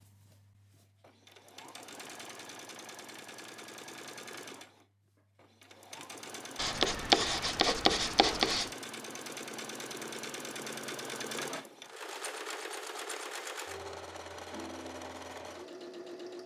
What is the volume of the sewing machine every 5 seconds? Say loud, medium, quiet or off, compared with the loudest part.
medium, loud, loud, loud.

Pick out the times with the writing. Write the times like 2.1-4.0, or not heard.
6.5-8.7.